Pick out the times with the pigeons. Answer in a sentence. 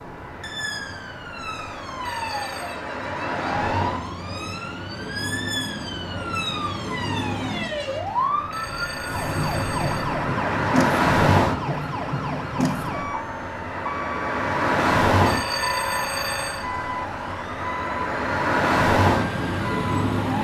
You can't hear the pigeons here.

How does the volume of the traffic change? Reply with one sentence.
The volume of the traffic goes up.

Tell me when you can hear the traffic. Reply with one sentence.
You can hear the traffic from 0.0 to 20.3 s.